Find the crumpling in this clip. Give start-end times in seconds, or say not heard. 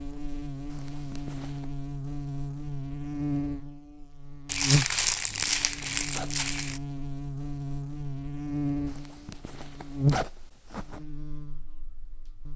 4.5-6.8.